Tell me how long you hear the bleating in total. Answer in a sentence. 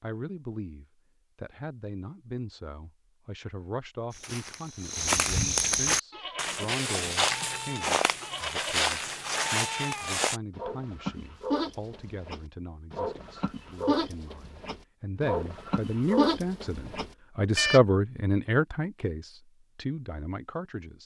You can hear the bleating for 12 seconds altogether.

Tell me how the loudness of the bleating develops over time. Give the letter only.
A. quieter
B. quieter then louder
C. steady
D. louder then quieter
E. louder
E.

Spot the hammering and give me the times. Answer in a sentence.
The hammering can't be heard in this clip.